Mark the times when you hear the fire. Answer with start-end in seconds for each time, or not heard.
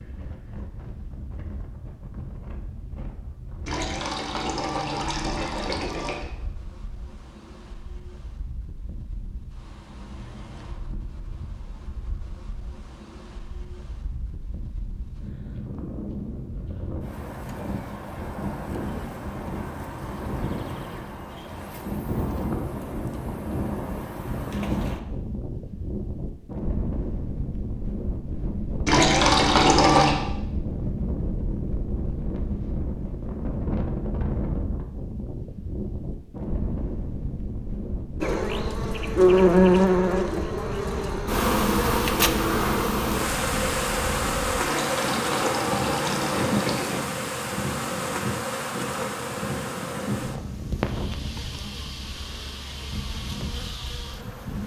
not heard.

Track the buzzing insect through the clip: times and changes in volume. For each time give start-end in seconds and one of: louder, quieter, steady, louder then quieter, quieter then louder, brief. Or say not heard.
38.2-54.6 quieter.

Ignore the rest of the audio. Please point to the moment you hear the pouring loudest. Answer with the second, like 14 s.
30 s.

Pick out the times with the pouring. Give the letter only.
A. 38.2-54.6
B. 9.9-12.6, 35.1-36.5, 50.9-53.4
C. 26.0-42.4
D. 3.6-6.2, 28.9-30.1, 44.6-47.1
D.